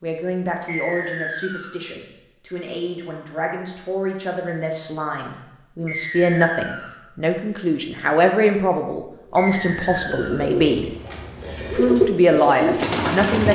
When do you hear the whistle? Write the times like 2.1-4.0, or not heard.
0.7-1.8, 5.8-7.0, 9.3-10.5.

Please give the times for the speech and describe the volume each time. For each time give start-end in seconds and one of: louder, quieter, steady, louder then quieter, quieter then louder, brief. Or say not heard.
0.0-10.8 louder
11.8-13.5 brief.